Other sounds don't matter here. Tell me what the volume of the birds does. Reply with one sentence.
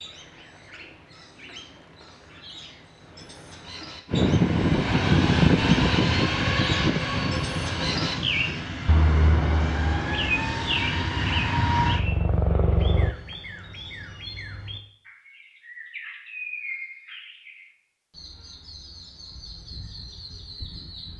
The loudness of the birds goes up, then down.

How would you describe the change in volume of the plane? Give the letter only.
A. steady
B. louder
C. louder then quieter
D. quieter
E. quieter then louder
E.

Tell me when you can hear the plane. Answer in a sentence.
The plane can be heard from 4.1 to 13.2 s.